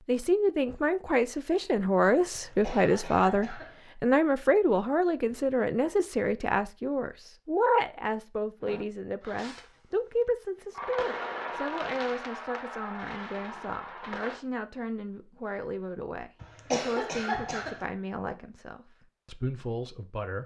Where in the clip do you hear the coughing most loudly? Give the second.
17 s.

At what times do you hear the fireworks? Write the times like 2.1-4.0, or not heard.
8.6-14.4.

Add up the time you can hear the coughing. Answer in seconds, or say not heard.
3 s.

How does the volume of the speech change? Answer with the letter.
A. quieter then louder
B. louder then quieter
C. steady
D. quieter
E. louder
D.